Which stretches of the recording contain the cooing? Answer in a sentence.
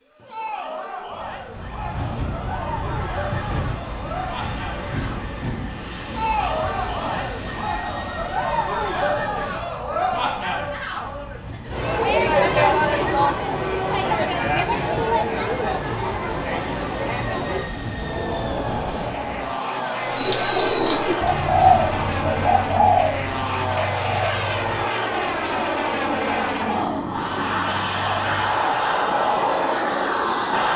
You can hear the cooing from 20.0 to 28.6 s.